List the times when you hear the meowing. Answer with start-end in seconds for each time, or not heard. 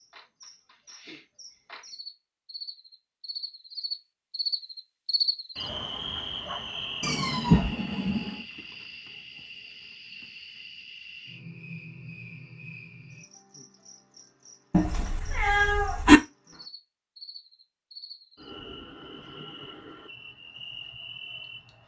7.0-8.4, 14.7-16.2.